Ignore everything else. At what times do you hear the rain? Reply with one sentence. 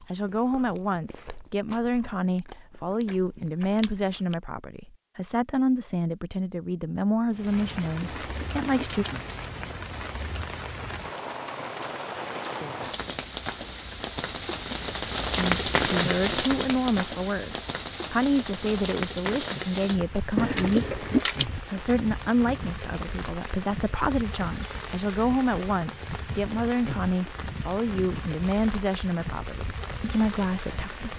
You can hear the rain from 7.3 to 31.1 s.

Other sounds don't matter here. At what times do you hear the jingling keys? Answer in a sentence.
You can hear the jingling keys from 8.0 to 9.6 s and from 20.4 to 21.4 s.